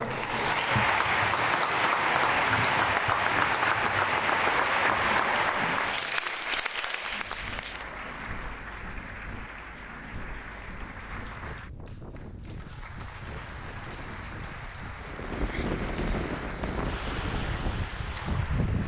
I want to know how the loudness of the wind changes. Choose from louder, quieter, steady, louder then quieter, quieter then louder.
louder.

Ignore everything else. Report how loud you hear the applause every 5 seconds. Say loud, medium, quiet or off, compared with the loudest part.
loud, medium, quiet, quiet.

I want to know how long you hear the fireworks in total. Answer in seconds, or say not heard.
not heard.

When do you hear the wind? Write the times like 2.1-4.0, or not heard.
7.0-18.8.